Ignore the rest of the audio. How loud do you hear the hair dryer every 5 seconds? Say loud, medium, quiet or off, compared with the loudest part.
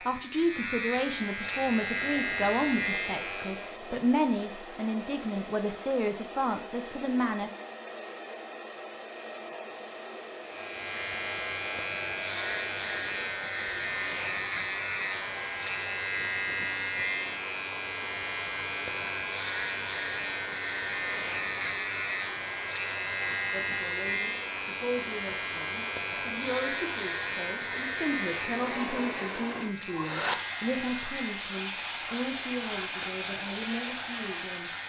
medium, medium, medium, medium, medium, medium, loud.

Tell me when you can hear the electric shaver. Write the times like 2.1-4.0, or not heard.
0.0-3.8, 10.4-34.8.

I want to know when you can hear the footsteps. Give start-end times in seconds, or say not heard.
not heard.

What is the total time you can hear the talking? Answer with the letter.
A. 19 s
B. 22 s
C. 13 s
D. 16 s
A.